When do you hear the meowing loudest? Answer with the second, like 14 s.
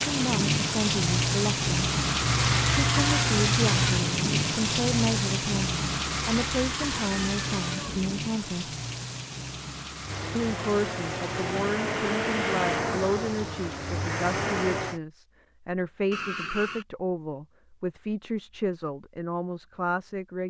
3 s.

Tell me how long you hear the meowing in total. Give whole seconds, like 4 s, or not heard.
4 s.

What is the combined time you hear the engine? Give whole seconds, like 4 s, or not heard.
5 s.